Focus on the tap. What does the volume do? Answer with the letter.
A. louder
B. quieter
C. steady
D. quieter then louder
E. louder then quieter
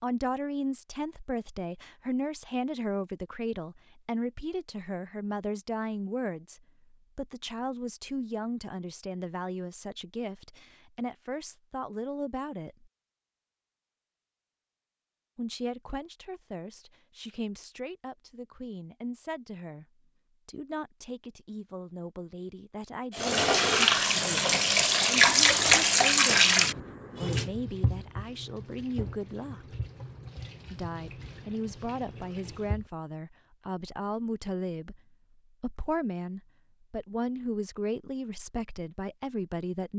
B.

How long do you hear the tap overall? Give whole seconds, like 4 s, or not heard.
10 s.